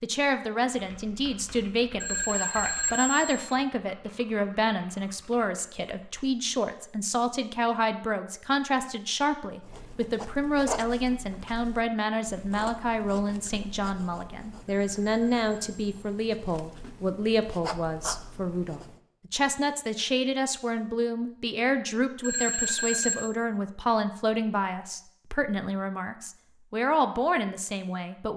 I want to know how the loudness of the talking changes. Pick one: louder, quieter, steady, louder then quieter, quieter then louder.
steady.